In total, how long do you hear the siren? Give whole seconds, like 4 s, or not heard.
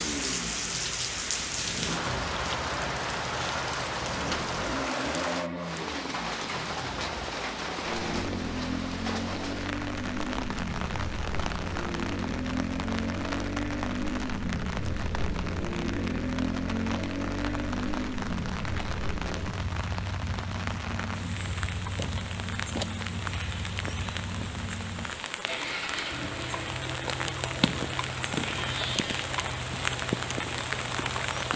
not heard.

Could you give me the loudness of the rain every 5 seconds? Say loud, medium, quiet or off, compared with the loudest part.
loud, loud, medium, medium, medium, loud, loud.